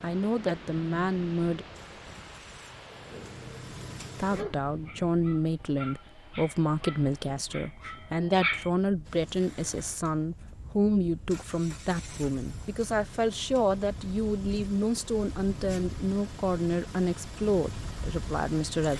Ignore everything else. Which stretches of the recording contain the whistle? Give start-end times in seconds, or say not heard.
not heard.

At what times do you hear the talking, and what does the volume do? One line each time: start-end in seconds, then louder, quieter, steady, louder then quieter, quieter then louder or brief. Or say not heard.
0.0-1.6 brief
4.2-18.9 steady.